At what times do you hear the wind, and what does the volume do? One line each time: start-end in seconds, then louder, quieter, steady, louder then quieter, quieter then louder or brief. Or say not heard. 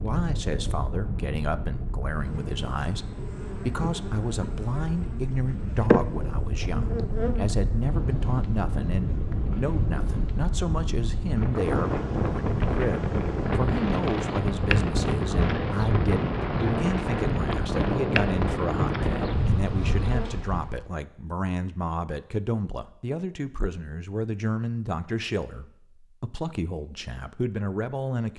0.0-20.9 louder.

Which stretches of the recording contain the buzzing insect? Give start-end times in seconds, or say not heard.
2.2-20.4.